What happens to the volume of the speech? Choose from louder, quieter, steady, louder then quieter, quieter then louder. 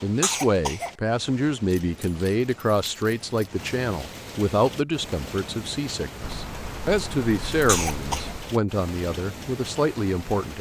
steady.